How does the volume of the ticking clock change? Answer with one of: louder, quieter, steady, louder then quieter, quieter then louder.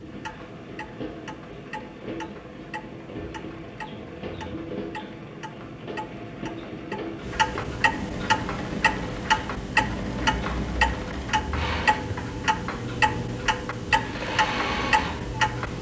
louder.